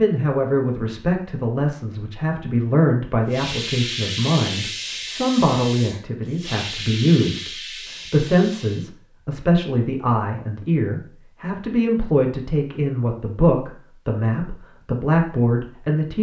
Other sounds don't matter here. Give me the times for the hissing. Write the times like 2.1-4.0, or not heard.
3.3-8.9.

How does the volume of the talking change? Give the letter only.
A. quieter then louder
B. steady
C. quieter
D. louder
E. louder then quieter
B.